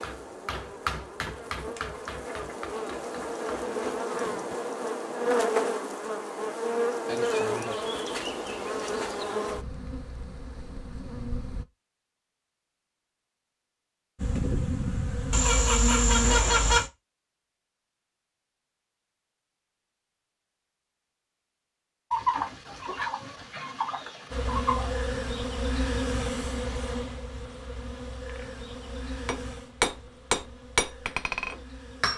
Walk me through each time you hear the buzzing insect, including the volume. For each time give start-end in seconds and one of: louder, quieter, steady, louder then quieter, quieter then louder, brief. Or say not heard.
0.0-11.7 louder then quieter
14.2-16.4 brief
24.3-32.1 quieter.